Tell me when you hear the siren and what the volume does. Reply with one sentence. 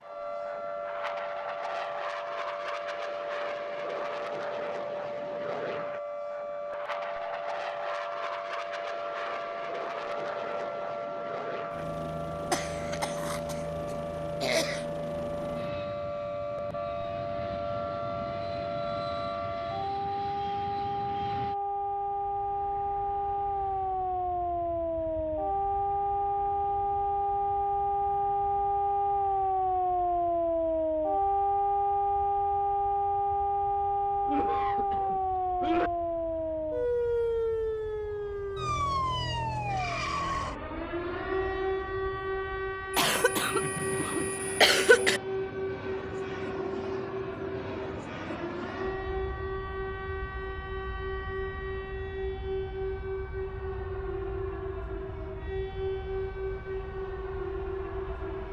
The siren can be heard from 0.0 to 58.4 s, getting louder then quieter.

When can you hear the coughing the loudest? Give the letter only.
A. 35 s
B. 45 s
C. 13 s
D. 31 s
B.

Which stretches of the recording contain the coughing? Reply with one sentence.
The coughing can be heard from 12.5 to 13.6 s, from 14.4 to 14.8 s, from 34.2 to 35.9 s and from 42.9 to 45.2 s.